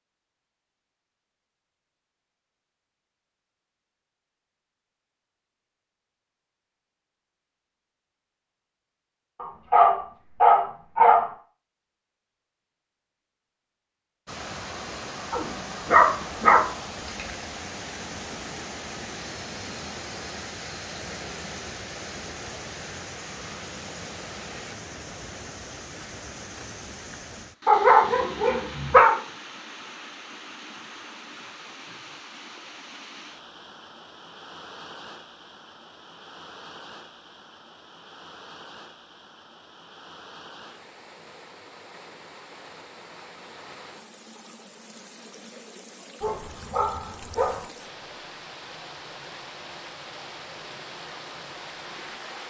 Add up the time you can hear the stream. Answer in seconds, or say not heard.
38 s.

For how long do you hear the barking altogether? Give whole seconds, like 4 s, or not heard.
7 s.